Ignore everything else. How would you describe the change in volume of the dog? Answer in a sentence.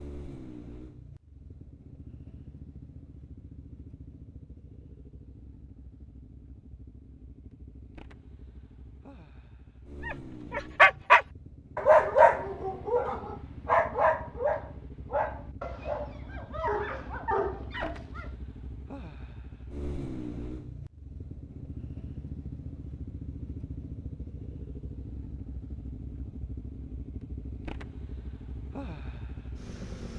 The volume of the dog goes down.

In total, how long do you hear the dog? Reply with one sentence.
The dog can be heard for 8 seconds in total.